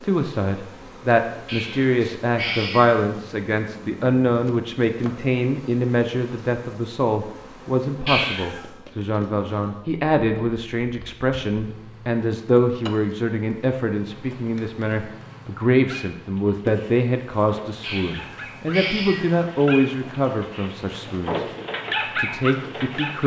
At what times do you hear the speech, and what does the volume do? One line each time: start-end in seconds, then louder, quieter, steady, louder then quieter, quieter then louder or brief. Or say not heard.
0.0-21.4 steady
22.1-23.2 brief.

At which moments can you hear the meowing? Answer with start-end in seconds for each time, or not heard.
1.4-3.0, 8.1-8.7, 17.8-19.4.